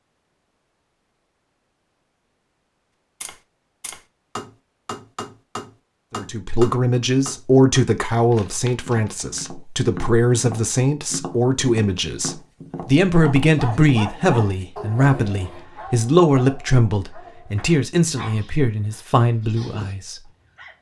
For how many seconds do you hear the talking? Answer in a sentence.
You can hear the talking for 14 seconds altogether.